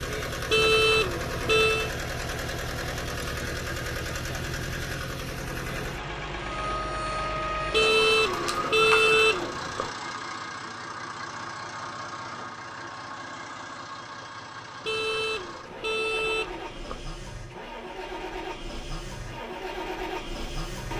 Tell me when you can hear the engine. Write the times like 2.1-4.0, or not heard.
0.0-20.9.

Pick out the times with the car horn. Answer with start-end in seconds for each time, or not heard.
0.5-1.9, 7.7-9.9, 14.8-17.1.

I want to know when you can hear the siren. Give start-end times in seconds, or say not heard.
6.3-9.3.